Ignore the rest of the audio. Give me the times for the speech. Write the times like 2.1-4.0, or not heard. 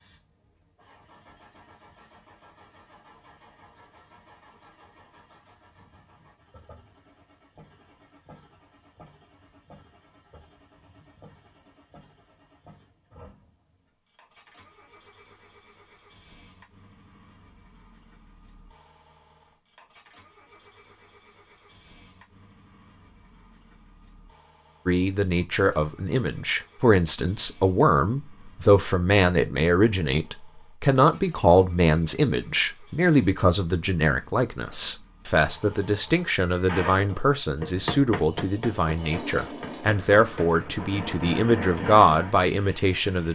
24.9-43.3.